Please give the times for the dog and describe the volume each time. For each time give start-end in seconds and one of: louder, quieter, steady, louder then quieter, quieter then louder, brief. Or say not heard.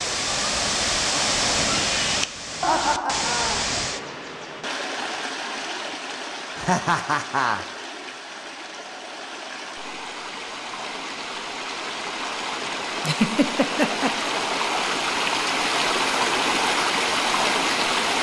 not heard.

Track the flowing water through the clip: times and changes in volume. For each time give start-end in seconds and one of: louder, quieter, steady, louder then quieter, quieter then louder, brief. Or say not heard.
0.0-18.1 quieter then louder.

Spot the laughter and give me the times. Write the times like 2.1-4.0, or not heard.
2.6-3.6, 6.5-7.6, 13.0-14.3.